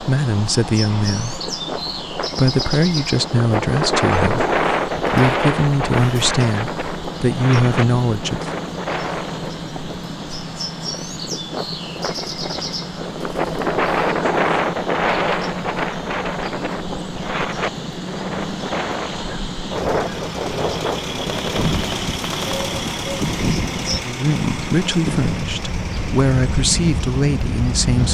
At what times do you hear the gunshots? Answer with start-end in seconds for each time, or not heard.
21.2-22.8.